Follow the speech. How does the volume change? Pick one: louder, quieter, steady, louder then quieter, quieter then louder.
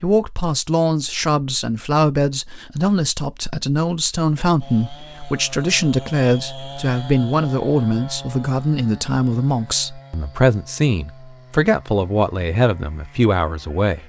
steady.